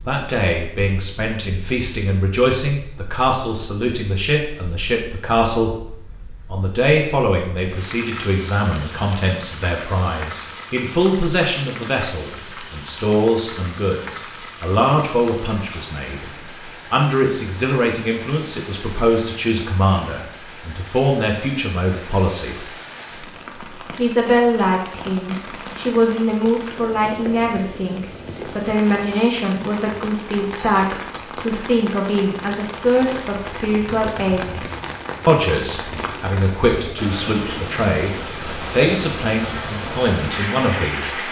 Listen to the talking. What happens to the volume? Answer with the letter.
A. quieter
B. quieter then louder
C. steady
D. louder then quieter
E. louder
C.